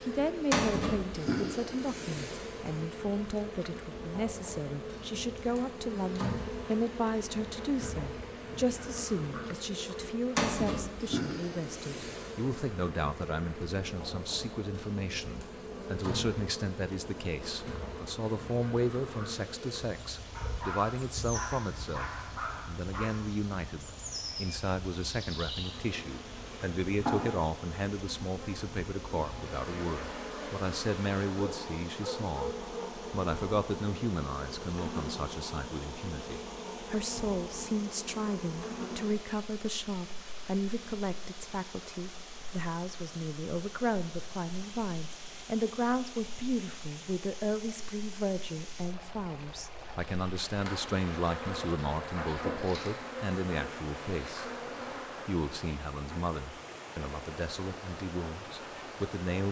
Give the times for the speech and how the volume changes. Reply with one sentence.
You can hear the speech from 0.0 to 54.5 s, at a steady volume; and from 55.2 to 59.4 s, getting quieter.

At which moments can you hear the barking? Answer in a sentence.
The barking can be heard from 20.4 to 23.2 s and from 31.4 to 33.0 s.